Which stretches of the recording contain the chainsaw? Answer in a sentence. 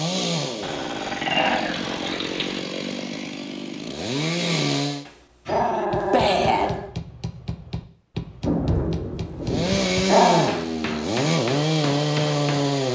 You can hear the chainsaw from 0.0 to 5.0 s and from 9.4 to 12.9 s.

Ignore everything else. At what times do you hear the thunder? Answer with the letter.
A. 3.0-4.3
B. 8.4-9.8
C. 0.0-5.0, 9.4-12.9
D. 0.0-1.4
B.